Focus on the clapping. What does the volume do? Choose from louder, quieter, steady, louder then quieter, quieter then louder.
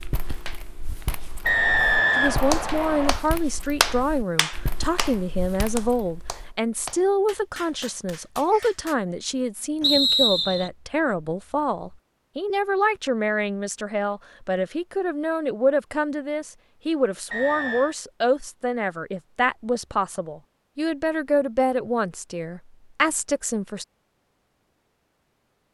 quieter.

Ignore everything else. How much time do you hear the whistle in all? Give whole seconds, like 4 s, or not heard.
3 s.